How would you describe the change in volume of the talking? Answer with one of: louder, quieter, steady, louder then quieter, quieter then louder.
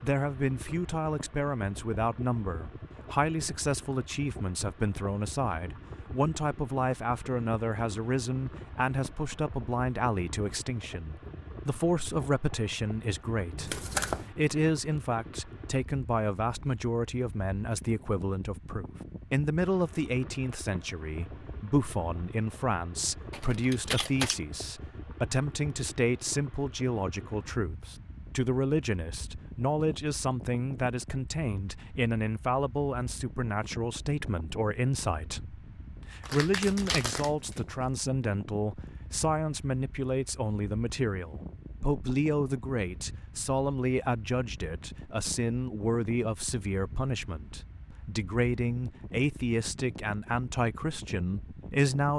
steady.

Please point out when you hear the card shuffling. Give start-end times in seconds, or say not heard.
13.6-14.3, 23.3-24.4, 36.2-37.6.